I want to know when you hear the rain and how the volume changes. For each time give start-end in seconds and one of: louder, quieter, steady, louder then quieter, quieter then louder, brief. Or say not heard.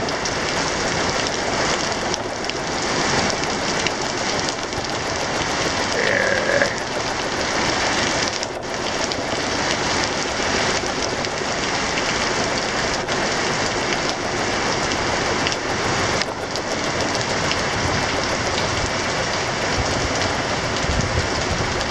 0.0-21.8 steady.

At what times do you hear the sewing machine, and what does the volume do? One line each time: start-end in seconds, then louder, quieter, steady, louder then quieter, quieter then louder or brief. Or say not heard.
0.0-21.8 steady.